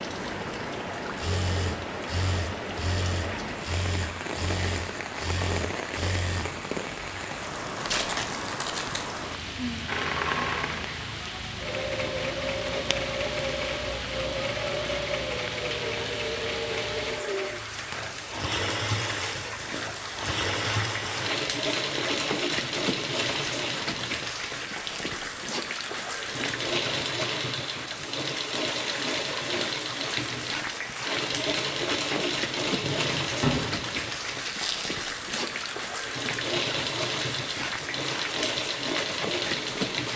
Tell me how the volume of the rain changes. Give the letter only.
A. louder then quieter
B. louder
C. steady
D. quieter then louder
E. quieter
C.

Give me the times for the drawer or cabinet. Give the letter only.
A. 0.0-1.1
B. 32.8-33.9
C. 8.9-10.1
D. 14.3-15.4
B.